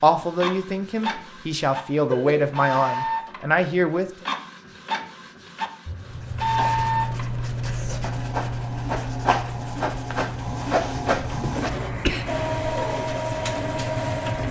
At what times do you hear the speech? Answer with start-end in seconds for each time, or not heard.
0.0-4.2.